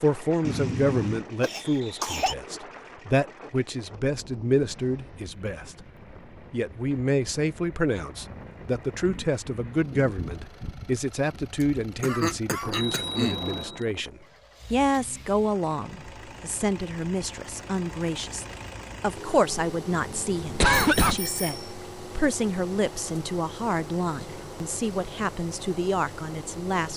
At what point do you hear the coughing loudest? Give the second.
21 s.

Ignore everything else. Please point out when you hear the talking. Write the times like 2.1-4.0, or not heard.
0.0-5.8, 6.5-26.9.